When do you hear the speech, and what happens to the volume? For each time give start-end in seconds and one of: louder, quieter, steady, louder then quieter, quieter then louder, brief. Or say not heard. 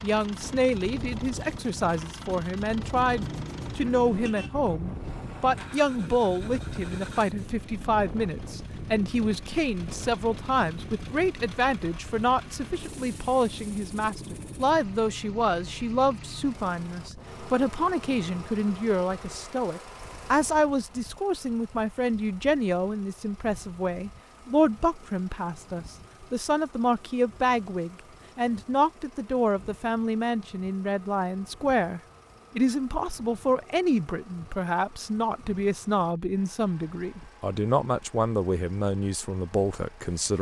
0.0-40.3 steady.